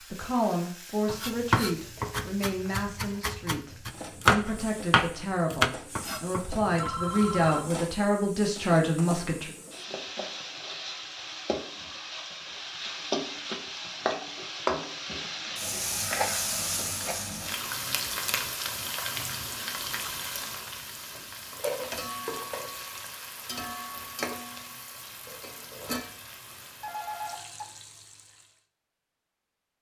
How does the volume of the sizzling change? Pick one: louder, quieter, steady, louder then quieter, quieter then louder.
louder then quieter.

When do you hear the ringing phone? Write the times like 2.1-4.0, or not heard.
6.5-7.7, 26.8-27.6.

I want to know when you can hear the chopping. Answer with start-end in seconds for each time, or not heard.
1.1-6.9.